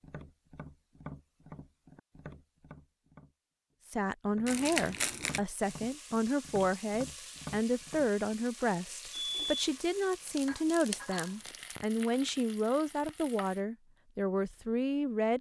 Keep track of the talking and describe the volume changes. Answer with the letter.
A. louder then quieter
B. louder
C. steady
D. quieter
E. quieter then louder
C.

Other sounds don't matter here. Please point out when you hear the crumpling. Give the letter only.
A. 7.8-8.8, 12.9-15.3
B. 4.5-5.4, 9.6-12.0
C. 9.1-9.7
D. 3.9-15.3
B.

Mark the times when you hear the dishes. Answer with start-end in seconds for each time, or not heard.
not heard.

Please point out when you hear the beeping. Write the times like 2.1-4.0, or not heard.
9.1-9.7.